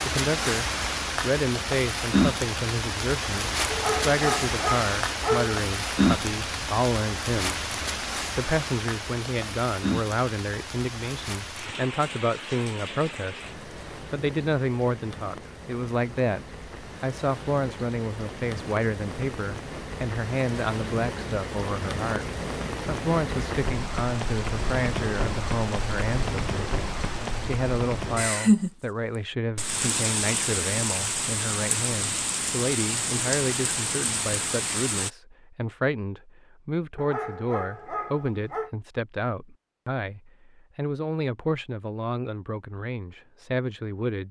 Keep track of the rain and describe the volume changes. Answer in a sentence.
The loudness of the rain goes down, then up.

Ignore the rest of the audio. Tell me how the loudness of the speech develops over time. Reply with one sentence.
The volume of the speech stays about the same.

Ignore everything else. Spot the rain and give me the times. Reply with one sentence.
The rain can be heard from 0.0 to 35.1 s.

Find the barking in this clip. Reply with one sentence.
You can hear the barking from 3.7 to 5.5 s and from 37.0 to 38.7 s.